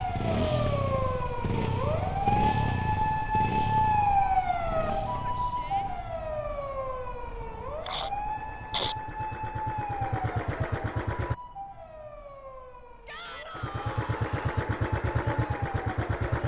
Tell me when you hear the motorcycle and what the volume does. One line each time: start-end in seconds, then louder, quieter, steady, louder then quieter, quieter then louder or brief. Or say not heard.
0.0-11.3 quieter then louder
13.6-16.4 brief.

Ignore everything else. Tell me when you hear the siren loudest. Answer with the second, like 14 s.
4 s.